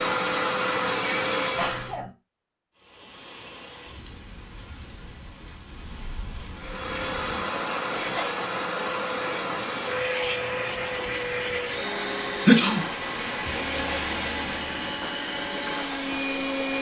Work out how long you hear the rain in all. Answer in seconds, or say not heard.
14 s.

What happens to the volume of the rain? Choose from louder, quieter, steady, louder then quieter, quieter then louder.
louder.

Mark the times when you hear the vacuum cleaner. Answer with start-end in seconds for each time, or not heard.
0.0-1.9, 6.5-16.7.